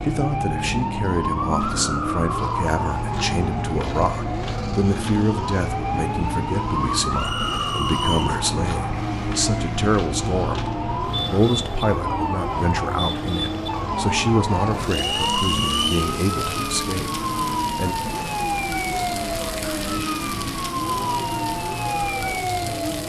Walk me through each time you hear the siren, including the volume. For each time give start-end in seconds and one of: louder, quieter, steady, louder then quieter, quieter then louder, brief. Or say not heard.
0.0-23.0 steady.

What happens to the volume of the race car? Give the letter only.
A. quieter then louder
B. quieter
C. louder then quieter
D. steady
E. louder
D.